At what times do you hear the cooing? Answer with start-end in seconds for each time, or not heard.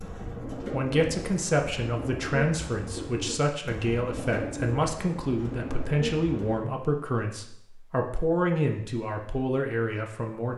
0.0-6.7.